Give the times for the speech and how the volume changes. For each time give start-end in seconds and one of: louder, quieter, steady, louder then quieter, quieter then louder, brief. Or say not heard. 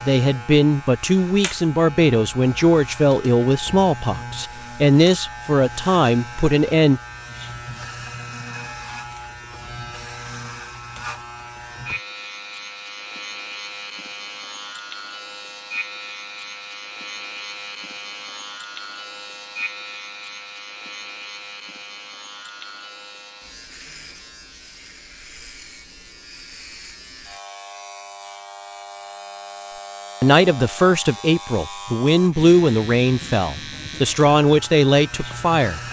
0.0-7.0 steady
30.2-35.8 steady.